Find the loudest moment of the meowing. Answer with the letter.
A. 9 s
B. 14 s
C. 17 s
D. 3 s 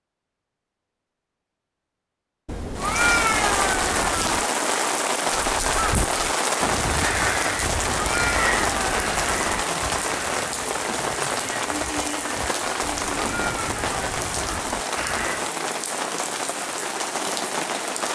D.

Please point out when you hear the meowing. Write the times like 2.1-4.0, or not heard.
2.5-4.5, 7.6-9.7, 12.8-14.8.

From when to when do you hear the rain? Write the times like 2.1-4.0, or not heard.
2.8-18.1.